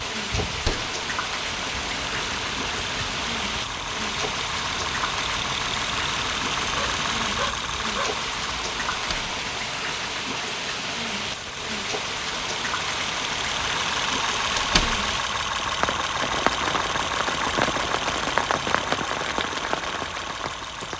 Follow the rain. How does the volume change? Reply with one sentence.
The loudness of the rain stays about the same.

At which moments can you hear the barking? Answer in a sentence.
The barking can be heard from 6.8 to 8.2 s.